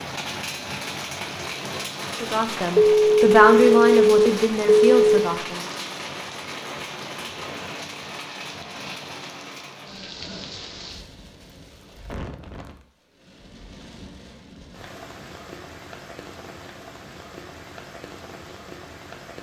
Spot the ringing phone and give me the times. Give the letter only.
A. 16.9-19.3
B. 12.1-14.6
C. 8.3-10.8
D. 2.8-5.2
D.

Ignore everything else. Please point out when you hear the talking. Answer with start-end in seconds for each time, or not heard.
2.2-5.6.